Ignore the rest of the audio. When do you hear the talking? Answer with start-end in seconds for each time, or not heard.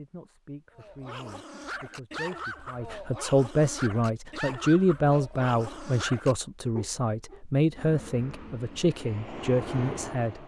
0.0-10.4.